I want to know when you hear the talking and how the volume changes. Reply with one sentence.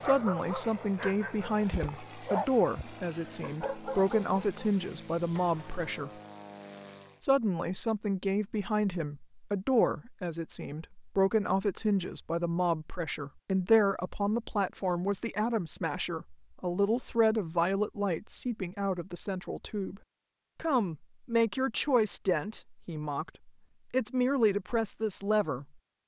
The talking can be heard from 0.0 to 6.1 s, at a steady volume; and from 7.2 to 25.6 s, at a steady volume.